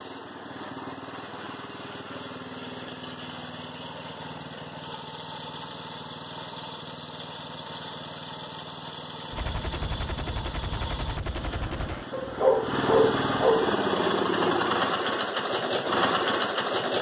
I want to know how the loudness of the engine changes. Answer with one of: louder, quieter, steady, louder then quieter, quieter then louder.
louder.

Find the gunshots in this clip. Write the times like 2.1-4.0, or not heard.
9.3-12.1.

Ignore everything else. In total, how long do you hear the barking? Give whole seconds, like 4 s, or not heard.
2 s.